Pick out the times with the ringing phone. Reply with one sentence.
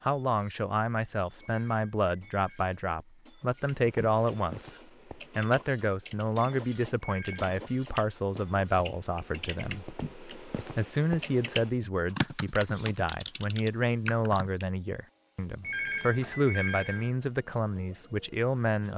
You can hear the ringing phone from 1.4 to 2.8 s, from 7.0 to 7.5 s and from 15.6 to 17.1 s.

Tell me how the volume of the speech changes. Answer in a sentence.
The volume of the speech stays about the same.